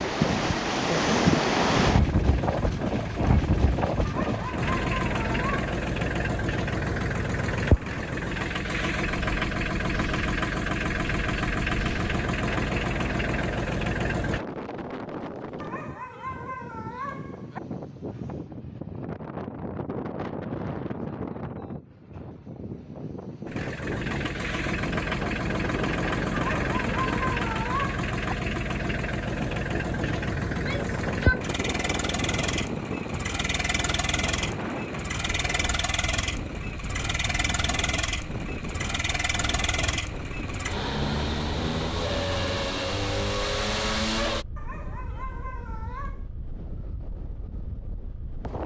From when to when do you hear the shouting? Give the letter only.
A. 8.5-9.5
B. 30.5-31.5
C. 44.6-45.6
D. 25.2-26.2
B.